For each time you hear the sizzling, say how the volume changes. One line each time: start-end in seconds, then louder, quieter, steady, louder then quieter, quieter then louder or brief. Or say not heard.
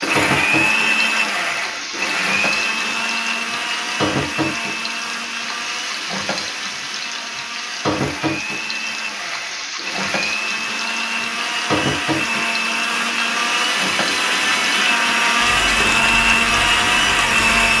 0.0-17.7 steady.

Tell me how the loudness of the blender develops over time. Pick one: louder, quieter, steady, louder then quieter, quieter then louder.
quieter then louder.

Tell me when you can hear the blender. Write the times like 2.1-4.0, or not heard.
0.0-17.7.